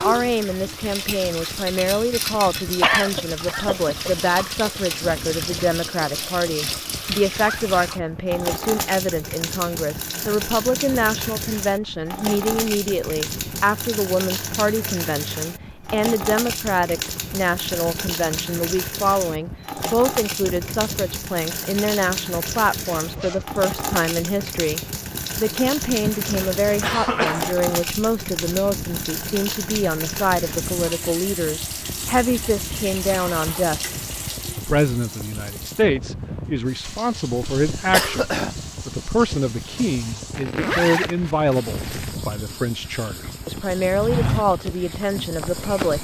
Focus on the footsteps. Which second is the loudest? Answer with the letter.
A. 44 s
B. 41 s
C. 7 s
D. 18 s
A.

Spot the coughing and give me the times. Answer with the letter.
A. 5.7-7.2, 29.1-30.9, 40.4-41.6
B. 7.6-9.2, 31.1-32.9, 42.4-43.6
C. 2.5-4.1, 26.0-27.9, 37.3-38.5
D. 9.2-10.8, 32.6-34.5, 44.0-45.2
C.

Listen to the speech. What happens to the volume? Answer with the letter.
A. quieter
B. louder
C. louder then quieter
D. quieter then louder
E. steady
E.